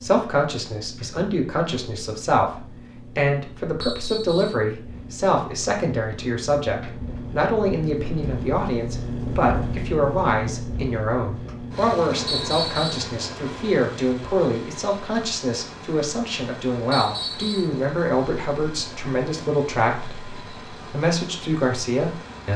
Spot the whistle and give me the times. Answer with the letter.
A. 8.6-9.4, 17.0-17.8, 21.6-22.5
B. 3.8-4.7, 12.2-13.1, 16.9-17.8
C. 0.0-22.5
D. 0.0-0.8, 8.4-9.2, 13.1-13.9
B.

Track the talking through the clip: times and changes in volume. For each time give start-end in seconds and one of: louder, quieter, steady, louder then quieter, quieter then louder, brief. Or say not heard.
0.0-22.5 steady.